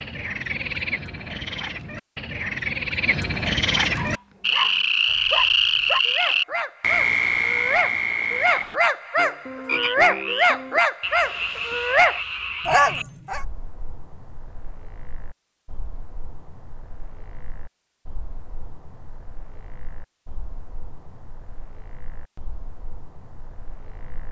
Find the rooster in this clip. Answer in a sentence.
You can't hear the rooster here.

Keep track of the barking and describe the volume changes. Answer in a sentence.
The volume of the barking goes up.